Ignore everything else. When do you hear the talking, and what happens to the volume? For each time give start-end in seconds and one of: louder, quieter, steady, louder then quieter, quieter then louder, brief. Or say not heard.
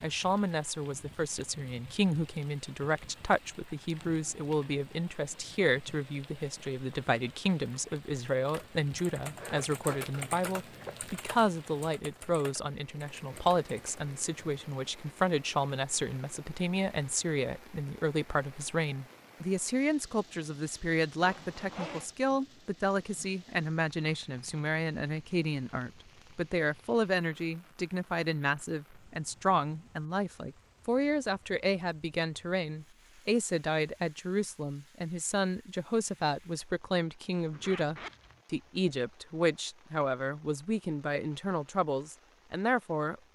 0.0-43.1 steady.